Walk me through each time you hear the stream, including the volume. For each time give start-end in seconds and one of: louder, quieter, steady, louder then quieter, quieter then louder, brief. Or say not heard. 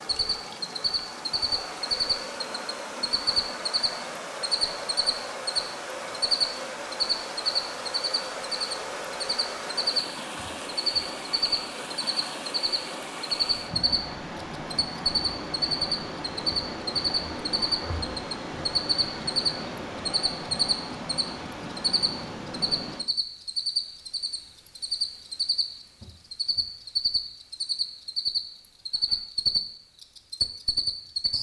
0.0-23.1 steady.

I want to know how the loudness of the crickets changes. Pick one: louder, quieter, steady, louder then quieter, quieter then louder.
steady.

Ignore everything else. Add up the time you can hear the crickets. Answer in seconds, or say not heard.
31 s.